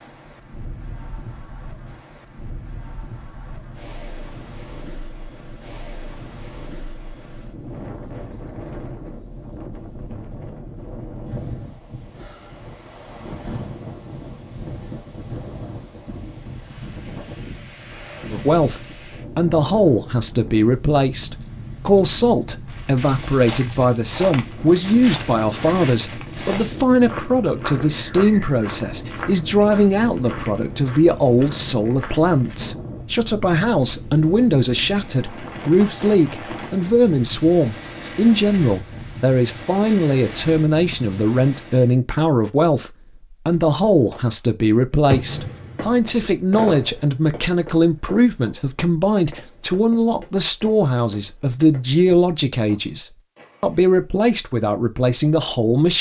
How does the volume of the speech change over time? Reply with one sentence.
The volume of the speech stays about the same.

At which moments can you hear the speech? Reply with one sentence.
You can hear the speech from 18.3 to 55.9 s.